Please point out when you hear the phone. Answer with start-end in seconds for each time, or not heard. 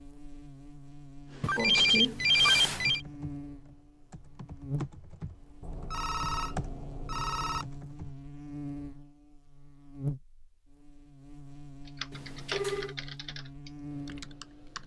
1.4-3.0, 5.6-7.7, 12.1-12.9.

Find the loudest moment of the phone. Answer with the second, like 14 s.
2 s.